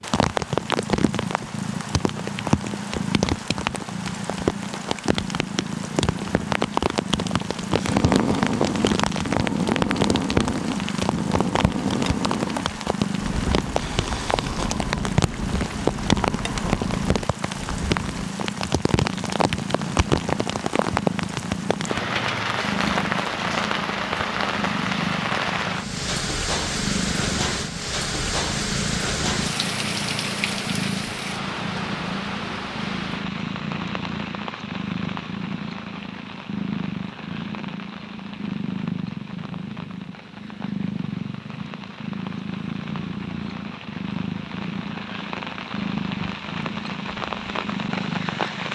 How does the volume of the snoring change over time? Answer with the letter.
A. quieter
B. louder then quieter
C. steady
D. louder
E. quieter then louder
A.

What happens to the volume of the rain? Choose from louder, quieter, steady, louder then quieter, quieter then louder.
quieter.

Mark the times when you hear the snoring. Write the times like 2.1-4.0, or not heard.
7.8-18.3.